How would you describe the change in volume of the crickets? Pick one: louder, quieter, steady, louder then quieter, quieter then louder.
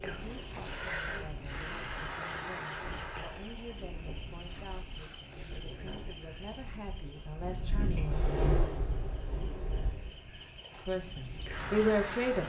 quieter then louder.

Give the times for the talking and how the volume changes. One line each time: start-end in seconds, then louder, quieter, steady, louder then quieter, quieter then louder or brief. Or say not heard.
0.0-8.6 louder
10.8-12.4 brief.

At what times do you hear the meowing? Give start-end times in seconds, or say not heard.
not heard.